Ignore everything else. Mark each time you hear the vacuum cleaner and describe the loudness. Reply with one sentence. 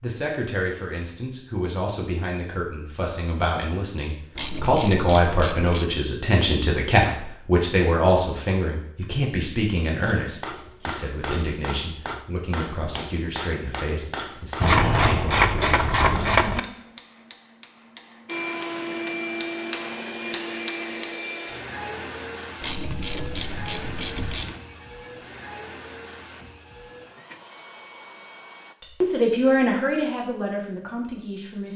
You can hear the vacuum cleaner from 18.2 to 28.8 s, getting quieter.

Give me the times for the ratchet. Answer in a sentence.
The ratchet can be heard from 4.3 to 6.0 s, from 14.6 to 16.6 s and from 22.6 to 24.6 s.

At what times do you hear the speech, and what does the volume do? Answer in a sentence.
The speech can be heard from 0.0 to 16.6 s, getting louder then quieter; and briefly from 28.8 to 31.7 s.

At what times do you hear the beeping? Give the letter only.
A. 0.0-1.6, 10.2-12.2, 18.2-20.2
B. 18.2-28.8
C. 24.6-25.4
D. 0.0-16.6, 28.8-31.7
C.